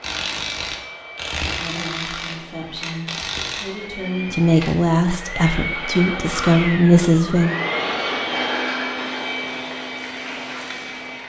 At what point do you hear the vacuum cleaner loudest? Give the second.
8 s.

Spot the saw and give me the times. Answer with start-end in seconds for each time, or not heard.
not heard.